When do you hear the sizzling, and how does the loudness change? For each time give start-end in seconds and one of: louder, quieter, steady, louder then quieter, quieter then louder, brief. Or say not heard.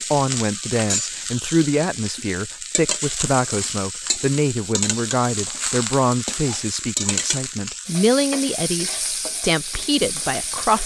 0.0-10.8 steady.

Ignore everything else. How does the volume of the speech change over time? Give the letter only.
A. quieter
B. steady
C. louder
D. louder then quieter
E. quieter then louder
B.